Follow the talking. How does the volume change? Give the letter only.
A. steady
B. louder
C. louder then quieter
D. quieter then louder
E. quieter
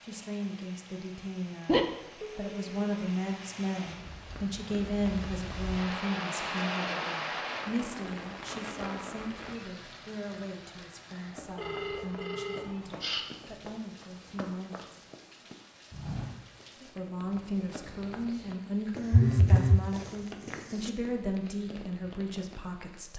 D.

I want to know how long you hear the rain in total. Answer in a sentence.
The rain can be heard for 23 seconds in total.